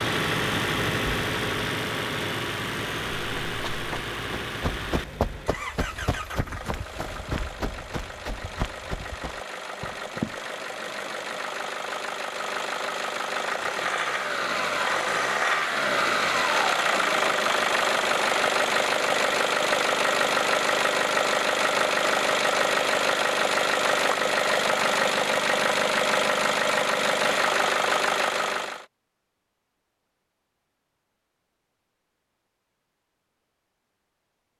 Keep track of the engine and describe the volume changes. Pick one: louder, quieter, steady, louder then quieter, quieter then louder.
quieter then louder.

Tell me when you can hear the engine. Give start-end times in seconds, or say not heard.
0.0-28.9.